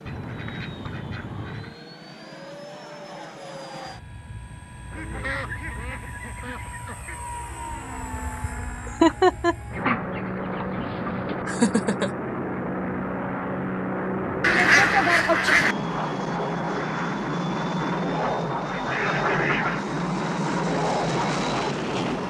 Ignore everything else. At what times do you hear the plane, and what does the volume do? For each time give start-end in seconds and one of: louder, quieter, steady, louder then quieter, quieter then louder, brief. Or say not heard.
0.0-22.2 louder.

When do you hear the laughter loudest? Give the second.
9 s.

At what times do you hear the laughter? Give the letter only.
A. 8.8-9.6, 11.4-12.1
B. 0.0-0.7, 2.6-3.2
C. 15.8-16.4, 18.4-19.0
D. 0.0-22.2
A.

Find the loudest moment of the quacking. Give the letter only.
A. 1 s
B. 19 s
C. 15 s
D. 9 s
C.